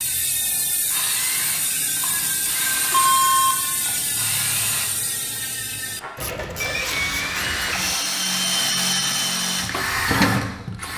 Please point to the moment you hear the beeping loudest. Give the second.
3 s.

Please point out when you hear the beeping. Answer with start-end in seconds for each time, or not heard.
2.9-3.5, 7.3-8.1.